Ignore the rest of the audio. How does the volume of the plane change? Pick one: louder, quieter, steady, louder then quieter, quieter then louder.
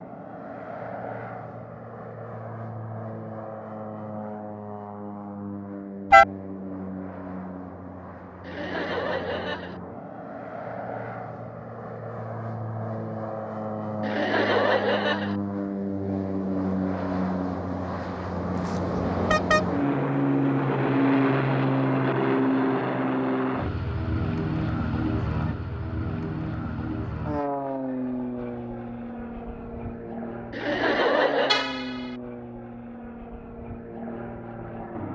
louder then quieter.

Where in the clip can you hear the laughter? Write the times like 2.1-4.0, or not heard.
8.4-9.8, 14.0-15.3, 30.5-31.6.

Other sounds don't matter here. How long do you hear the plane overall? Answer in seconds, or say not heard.
35 s.